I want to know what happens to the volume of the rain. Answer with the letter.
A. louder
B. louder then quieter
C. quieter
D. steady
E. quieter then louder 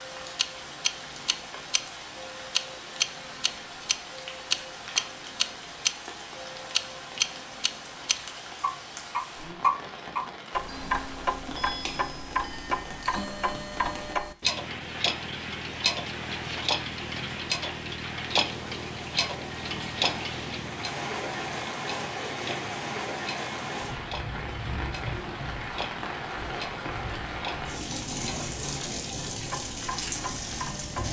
A.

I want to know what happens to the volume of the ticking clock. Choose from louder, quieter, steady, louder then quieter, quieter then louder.
quieter.